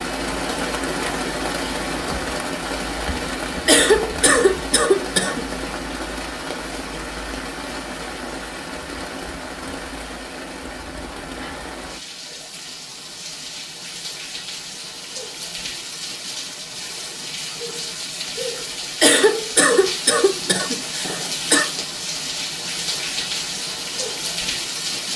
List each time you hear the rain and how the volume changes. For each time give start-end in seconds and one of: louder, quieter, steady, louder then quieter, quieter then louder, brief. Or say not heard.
0.0-25.1 quieter then louder.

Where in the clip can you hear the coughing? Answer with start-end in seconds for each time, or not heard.
3.6-5.5, 19.0-21.6.